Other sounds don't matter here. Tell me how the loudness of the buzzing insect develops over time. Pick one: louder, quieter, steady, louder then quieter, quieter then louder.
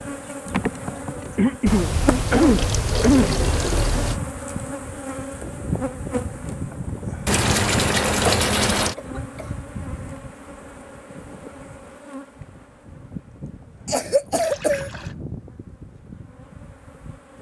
quieter.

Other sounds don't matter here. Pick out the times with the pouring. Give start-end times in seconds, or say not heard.
1.6-4.2, 7.2-8.9, 14.3-15.2.